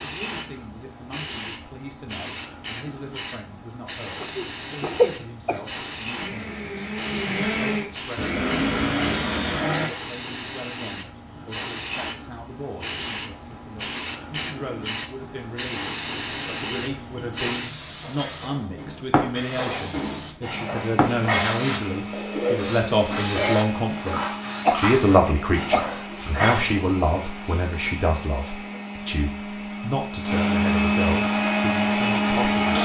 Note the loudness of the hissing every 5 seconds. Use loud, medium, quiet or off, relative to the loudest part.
medium, medium, loud, loud, loud, off, off.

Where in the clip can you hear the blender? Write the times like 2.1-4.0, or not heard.
6.2-9.9, 20.5-32.8.